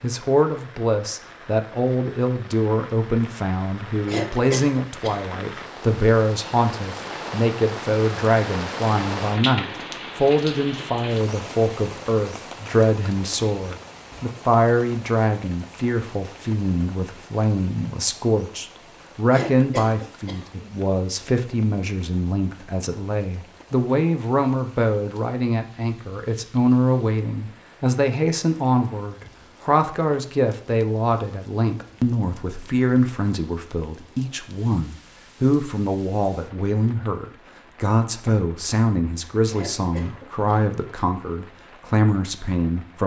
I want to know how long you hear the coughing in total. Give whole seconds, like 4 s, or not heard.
4 s.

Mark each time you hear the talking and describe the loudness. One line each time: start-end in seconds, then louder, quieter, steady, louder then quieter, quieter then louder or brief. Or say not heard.
0.0-43.0 steady.